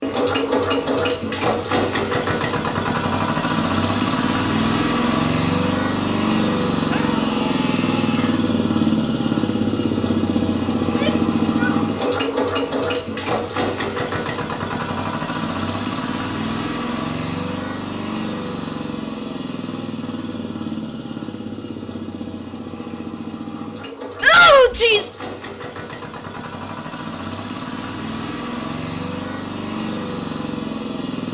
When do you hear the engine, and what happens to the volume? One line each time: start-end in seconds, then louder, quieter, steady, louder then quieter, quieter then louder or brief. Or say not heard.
0.0-31.2 quieter.